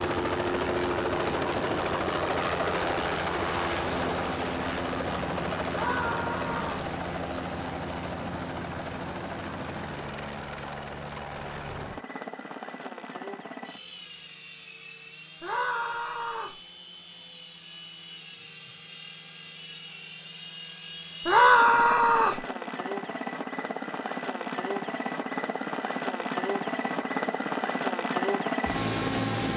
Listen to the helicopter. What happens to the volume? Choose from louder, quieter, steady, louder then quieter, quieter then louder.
quieter then louder.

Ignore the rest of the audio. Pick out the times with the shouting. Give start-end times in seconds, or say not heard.
5.7-6.9, 15.4-16.6, 21.2-22.4.